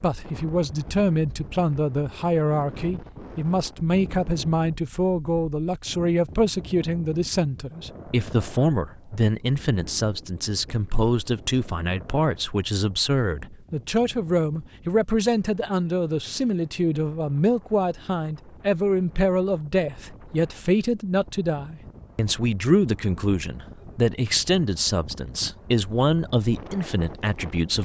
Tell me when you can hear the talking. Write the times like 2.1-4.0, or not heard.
0.0-27.8.